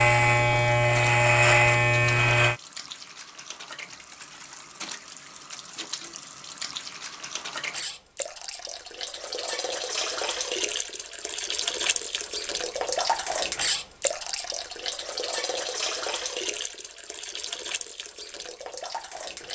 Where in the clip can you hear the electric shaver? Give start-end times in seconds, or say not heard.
0.0-2.6.